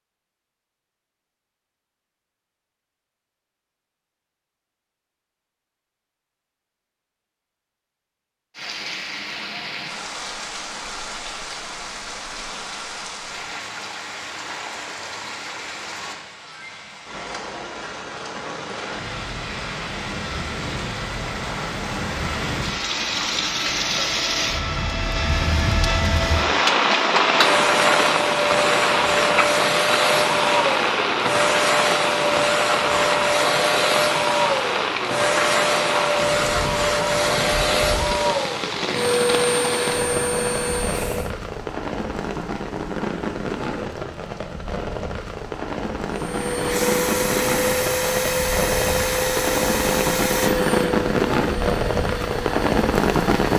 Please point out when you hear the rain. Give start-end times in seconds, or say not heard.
8.6-53.5.